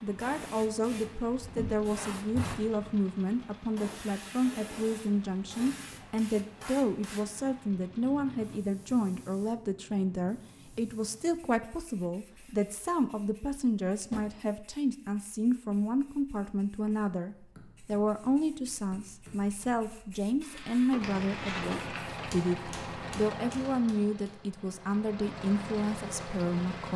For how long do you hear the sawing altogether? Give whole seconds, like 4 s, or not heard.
not heard.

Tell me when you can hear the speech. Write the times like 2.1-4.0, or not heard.
0.0-26.9.